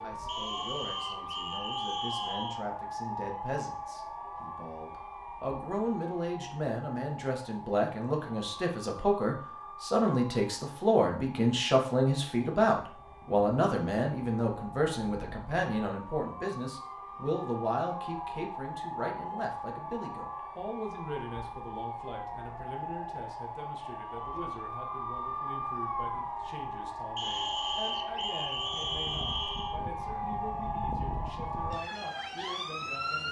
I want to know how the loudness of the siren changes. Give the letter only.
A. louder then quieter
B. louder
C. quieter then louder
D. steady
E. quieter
C.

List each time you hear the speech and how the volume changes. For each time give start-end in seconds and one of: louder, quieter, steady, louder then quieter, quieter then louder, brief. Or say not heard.
0.0-33.2 louder then quieter.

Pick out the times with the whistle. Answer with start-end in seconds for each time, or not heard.
0.2-2.6, 27.1-29.8.